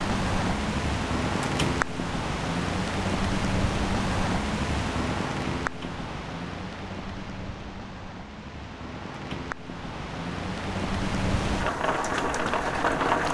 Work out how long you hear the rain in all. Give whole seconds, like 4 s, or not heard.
13 s.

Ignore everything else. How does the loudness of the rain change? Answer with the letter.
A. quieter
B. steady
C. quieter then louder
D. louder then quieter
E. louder
C.